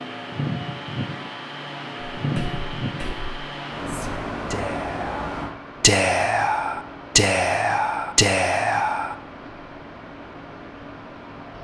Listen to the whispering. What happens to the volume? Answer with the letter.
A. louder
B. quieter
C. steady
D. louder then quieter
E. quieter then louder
A.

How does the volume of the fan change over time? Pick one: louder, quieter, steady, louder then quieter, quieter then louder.
quieter.